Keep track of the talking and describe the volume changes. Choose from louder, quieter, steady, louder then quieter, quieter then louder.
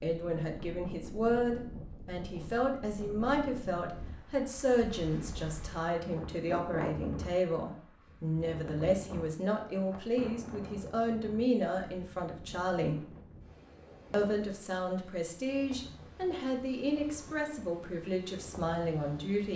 steady.